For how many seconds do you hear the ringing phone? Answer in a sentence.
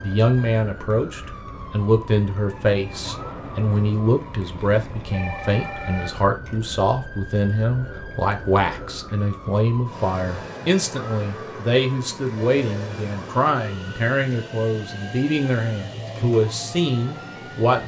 The ringing phone can be heard for 2 seconds in total.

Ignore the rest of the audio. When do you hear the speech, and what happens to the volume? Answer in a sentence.
You can hear the speech from 0.0 to 17.8 s, at a steady volume.